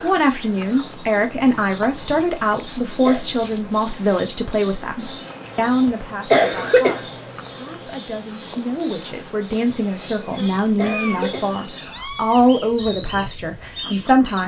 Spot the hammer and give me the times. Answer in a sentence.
The hammer can't be heard in this clip.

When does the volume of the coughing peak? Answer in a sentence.
The volume of the coughing peaks at 6 seconds.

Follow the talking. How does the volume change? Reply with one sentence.
The volume of the talking goes down, then up.